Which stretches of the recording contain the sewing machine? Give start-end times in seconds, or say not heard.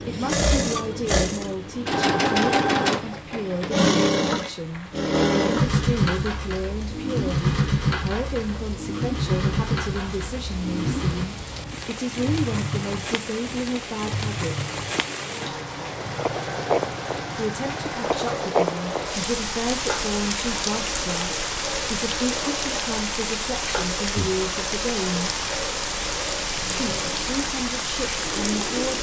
0.0-28.9.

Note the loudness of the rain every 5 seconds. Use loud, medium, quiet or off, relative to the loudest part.
quiet, quiet, medium, loud, loud, loud.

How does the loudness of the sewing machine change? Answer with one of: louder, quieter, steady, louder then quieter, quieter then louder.
quieter.